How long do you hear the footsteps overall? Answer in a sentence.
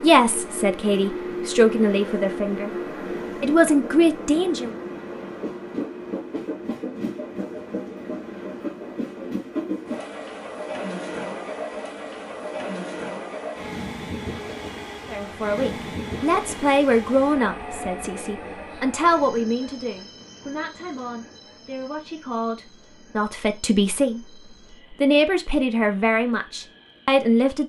The footsteps can't be heard in this clip.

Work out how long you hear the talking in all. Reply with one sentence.
You can hear the talking for 16 seconds altogether.